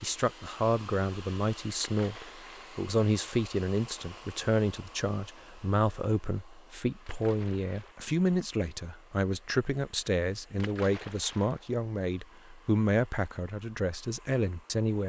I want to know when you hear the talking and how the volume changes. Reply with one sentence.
The talking can be heard from 0.0 to 15.0 s, at a steady volume.